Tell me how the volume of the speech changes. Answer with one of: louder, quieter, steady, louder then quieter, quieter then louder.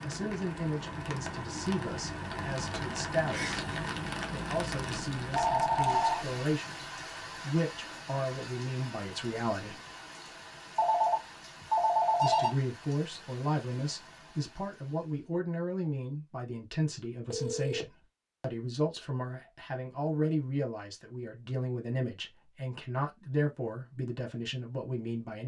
steady.